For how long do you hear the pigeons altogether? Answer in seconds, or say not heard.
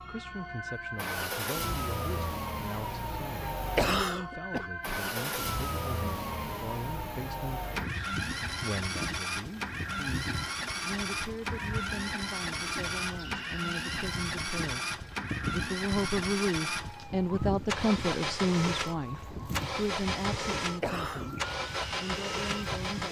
not heard.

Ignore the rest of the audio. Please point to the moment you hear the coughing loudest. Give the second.
4 s.